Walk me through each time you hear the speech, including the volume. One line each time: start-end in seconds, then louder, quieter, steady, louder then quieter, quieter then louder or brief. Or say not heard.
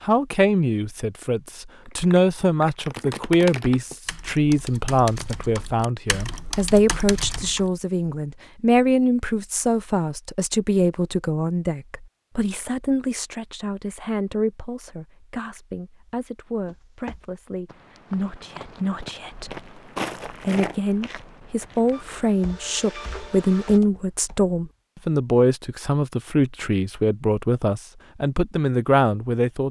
0.0-29.6 quieter then louder.